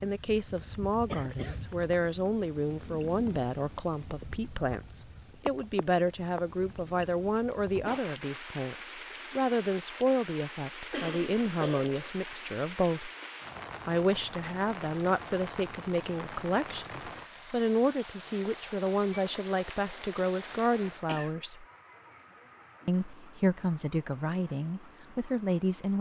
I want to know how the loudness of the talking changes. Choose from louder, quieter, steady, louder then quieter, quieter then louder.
steady.